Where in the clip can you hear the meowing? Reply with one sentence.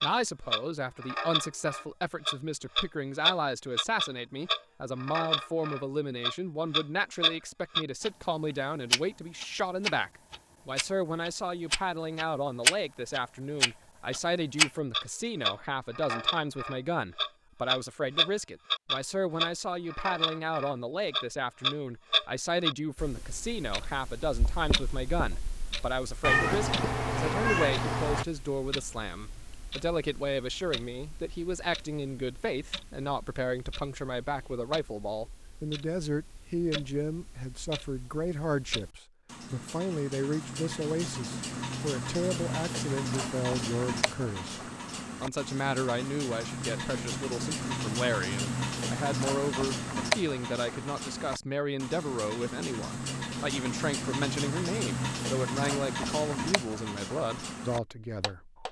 The meowing can be heard from 26.2 to 28.2 s.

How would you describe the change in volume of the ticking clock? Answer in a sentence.
The loudness of the ticking clock goes down, then up.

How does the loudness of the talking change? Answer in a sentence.
The volume of the talking stays about the same.